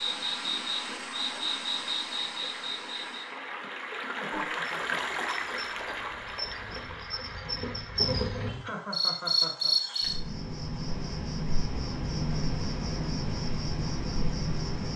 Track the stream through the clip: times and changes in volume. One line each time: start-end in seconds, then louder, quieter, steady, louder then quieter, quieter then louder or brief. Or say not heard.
0.0-8.4 louder then quieter.